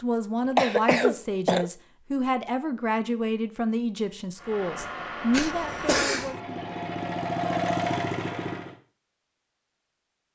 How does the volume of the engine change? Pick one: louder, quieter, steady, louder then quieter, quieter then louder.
louder.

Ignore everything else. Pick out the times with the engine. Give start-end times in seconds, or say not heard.
4.3-8.8.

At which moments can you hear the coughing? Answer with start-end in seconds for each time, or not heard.
0.6-1.6, 5.3-6.3.